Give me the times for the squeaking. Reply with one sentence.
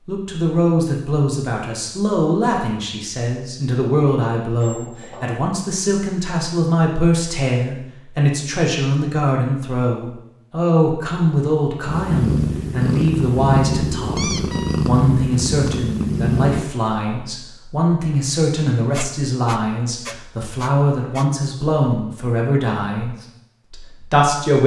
The squeaking can be heard from 4.6 to 5.3 s, from 13.7 to 14.8 s and from 18.9 to 21.2 s.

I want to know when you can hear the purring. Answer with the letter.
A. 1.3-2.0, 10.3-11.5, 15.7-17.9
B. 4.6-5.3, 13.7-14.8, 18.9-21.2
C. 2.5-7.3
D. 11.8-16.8
D.